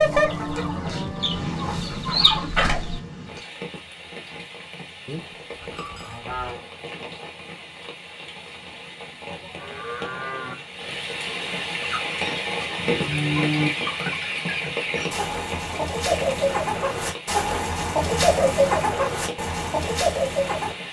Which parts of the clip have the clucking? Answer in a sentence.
The clucking can be heard from 0.0 to 3.0 s and from 11.8 to 20.8 s.